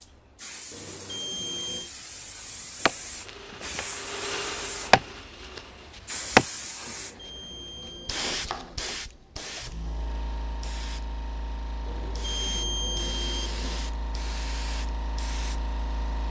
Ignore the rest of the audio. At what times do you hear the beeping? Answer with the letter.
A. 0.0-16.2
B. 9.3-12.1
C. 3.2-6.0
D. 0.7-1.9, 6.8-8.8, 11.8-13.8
D.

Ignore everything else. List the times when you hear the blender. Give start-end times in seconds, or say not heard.
3.2-6.0.